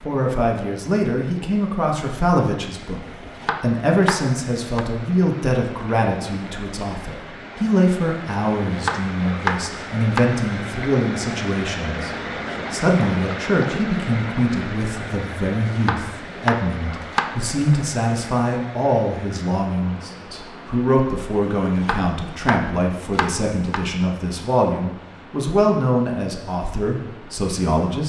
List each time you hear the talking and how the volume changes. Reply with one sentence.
You can hear the talking from 0.0 to 28.0 s, at a steady volume.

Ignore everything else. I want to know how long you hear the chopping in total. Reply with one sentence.
The chopping can be heard for 8 seconds in total.